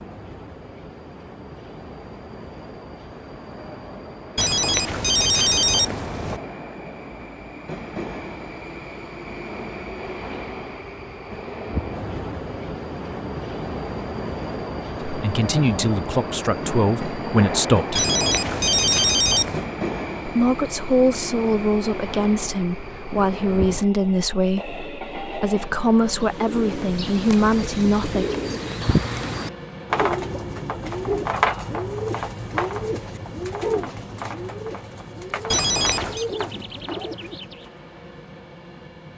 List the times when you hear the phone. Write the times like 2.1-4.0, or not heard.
4.3-6.4, 17.9-19.7, 35.5-36.2.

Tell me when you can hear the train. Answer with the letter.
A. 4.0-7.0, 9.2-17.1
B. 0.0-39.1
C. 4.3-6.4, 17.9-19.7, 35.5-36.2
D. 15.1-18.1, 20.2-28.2
B.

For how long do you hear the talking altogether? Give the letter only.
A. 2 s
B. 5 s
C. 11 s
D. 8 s
C.